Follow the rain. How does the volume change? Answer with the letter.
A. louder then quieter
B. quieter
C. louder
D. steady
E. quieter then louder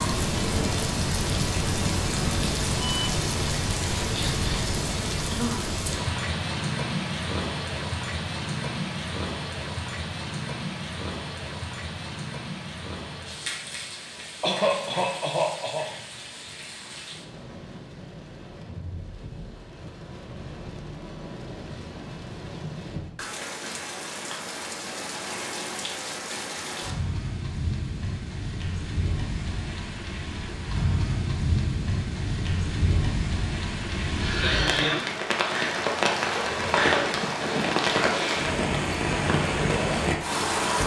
E.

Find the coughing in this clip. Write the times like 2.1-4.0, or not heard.
4.0-5.8, 14.4-15.9, 34.2-35.1.